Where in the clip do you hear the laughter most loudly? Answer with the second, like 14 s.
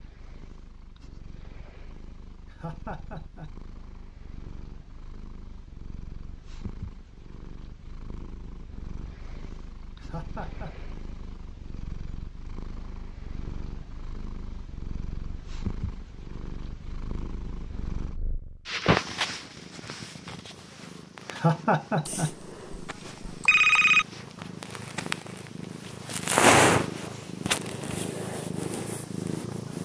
22 s.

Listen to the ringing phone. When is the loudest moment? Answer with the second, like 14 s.
24 s.